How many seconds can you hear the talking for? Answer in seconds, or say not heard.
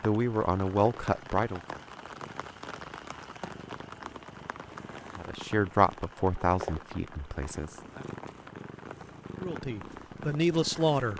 6 s.